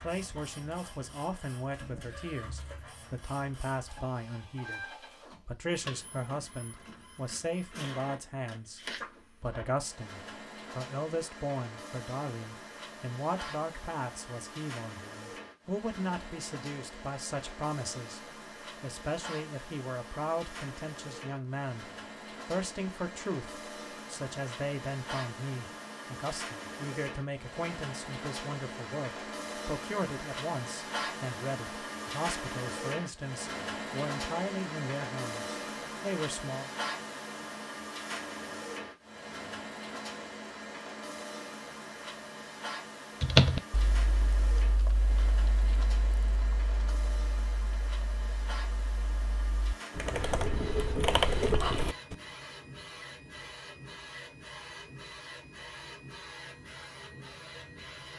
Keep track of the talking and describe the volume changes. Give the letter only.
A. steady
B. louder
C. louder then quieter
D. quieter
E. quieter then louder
A.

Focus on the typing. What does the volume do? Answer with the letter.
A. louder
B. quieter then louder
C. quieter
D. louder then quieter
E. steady
B.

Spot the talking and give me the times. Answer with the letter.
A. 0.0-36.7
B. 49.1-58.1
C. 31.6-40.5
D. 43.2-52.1
A.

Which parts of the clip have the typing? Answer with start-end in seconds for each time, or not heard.
43.2-52.1.